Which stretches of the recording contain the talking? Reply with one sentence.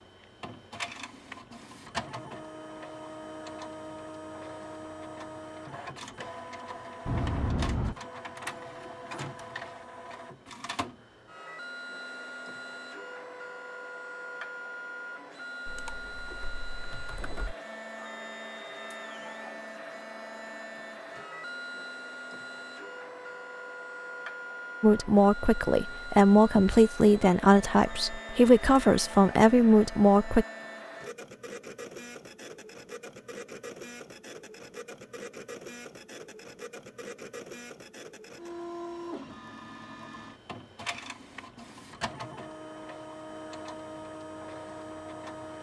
You can hear the talking from 24.8 to 30.4 s.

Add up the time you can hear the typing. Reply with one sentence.
You can hear the typing for 2 seconds altogether.